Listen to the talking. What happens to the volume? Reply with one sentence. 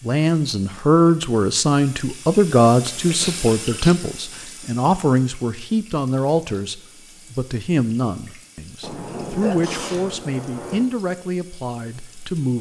The loudness of the talking goes down.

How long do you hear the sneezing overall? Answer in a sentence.
You can hear the sneezing for 3 seconds altogether.